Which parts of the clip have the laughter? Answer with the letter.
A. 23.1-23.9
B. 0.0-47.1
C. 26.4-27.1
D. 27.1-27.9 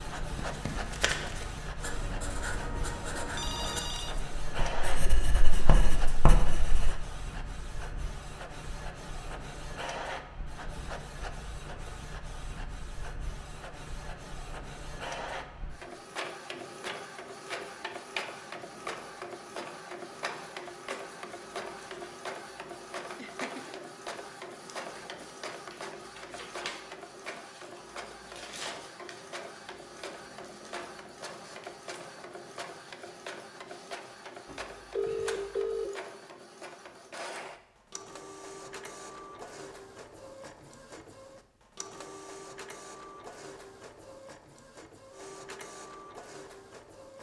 A.